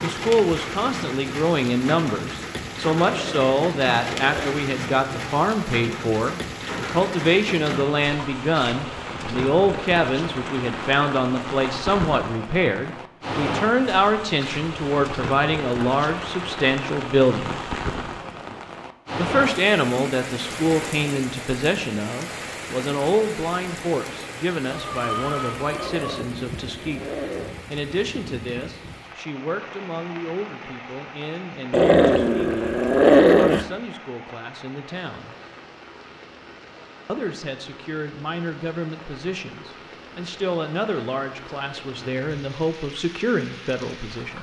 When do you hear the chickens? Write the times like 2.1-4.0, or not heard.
24.7-26.2.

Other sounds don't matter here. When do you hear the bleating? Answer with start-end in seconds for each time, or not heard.
not heard.